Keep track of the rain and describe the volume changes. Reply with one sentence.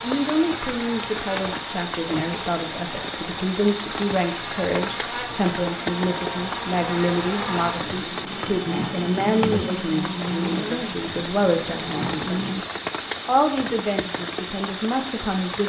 The volume of the rain stays about the same.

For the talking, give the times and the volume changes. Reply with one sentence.
You can hear the talking from 0.0 to 15.6 s, at a steady volume.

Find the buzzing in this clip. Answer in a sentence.
The buzzing can be heard from 0.0 to 12.7 s.